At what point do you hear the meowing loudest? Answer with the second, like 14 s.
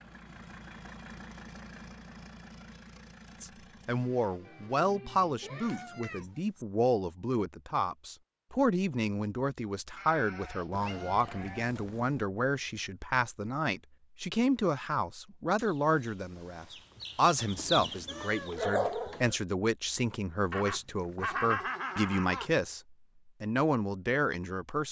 19 s.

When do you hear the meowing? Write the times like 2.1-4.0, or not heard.
5.3-6.7, 10.7-12.2, 18.1-19.4.